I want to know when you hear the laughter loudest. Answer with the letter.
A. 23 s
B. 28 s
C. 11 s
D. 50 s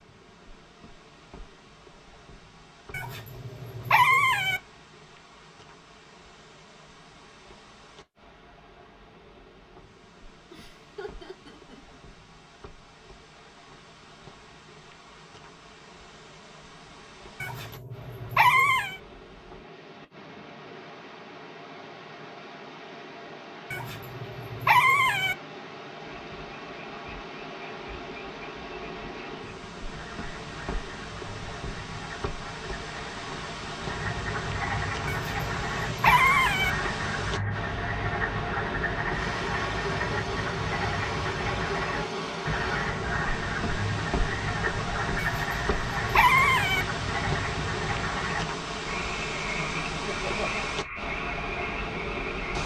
D.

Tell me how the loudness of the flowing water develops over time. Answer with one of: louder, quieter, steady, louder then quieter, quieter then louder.
louder.